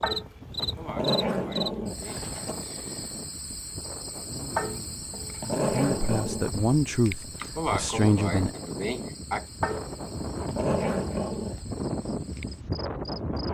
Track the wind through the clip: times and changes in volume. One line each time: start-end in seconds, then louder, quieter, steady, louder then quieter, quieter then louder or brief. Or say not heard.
0.0-13.4 louder.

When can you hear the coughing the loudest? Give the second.
8 s.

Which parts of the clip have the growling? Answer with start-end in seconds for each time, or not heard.
0.0-2.5, 4.5-6.5, 9.6-11.6.